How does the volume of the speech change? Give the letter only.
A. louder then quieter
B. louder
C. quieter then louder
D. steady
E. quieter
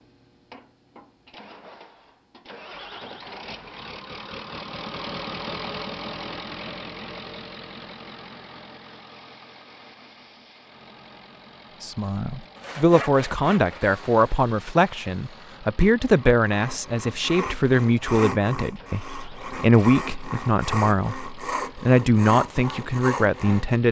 D.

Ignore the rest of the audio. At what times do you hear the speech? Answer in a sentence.
The speech can be heard from 11.8 to 23.8 s.